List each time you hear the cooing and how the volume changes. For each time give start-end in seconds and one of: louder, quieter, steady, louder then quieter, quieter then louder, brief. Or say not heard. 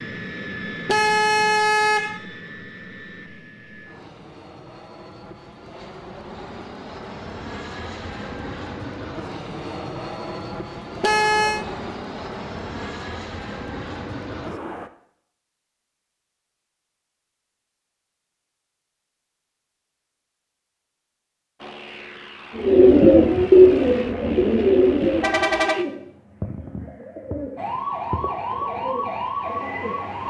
22.6-30.0 quieter.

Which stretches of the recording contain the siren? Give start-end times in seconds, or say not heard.
27.6-30.2.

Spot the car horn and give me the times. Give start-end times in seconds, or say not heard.
0.8-2.2, 11.0-11.7, 25.2-25.8.